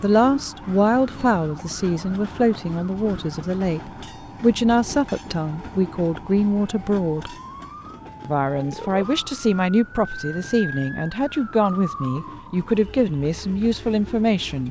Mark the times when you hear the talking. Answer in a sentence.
The talking can be heard from 0.0 to 7.3 s and from 8.2 to 14.6 s.